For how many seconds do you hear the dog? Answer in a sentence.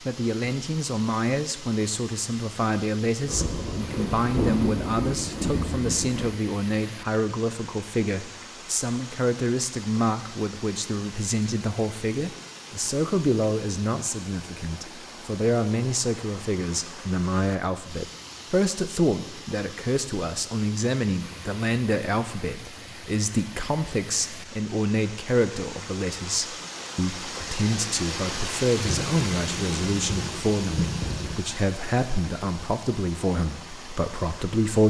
The dog can't be heard in this clip.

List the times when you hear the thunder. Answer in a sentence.
The thunder can be heard from 3.2 to 6.3 s and from 28.8 to 31.4 s.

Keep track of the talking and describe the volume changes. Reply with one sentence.
The volume of the talking stays about the same.